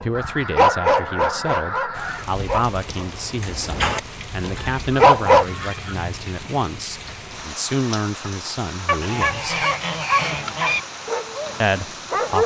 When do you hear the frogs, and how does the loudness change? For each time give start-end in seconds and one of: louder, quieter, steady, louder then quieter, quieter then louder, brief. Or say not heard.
not heard.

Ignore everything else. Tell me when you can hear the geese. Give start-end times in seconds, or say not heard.
0.1-2.3, 4.5-6.0, 9.0-10.8.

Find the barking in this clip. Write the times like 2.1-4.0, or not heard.
0.0-5.5, 8.8-12.4.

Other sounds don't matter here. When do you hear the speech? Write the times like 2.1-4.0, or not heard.
0.0-9.7, 11.6-12.4.